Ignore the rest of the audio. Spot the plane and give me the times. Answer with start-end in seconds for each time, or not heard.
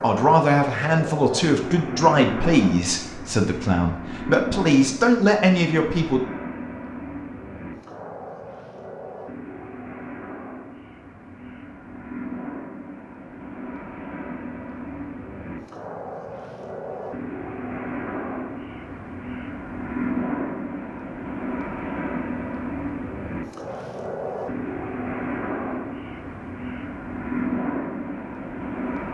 0.0-29.0.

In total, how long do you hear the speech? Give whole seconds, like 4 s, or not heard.
6 s.